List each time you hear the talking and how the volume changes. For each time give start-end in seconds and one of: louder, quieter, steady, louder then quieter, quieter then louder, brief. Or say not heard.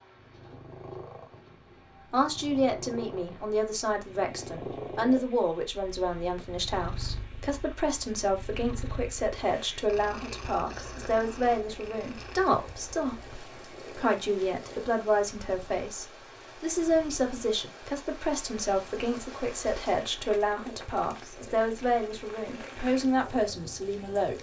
2.1-24.3 steady.